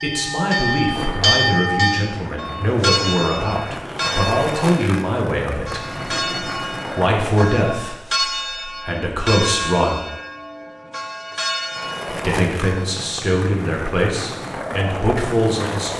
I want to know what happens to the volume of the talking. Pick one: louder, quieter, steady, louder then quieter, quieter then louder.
steady.